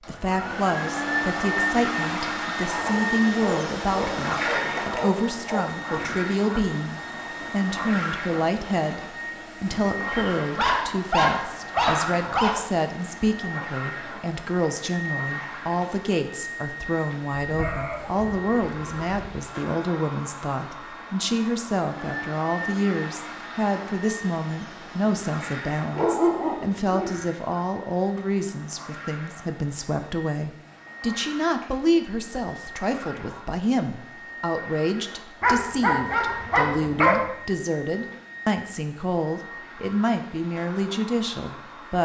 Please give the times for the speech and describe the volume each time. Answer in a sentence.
The speech can be heard from 0.1 to 41.9 s, at a steady volume.